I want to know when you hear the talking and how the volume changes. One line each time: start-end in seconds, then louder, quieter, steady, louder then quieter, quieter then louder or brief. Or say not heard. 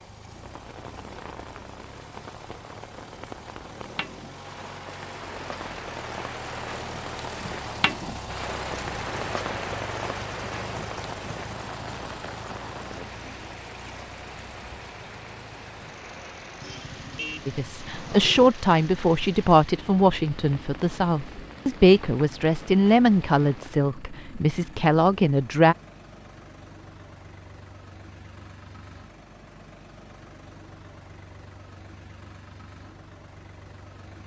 17.4-25.8 steady.